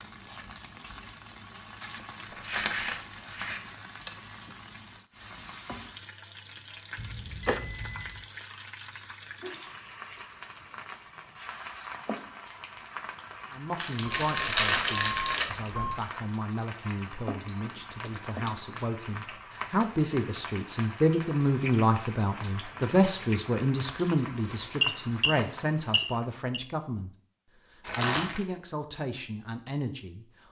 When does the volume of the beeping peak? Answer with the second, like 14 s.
25 s.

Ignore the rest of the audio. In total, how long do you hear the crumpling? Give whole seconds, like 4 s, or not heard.
4 s.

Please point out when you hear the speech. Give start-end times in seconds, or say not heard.
13.5-27.1, 27.9-30.2.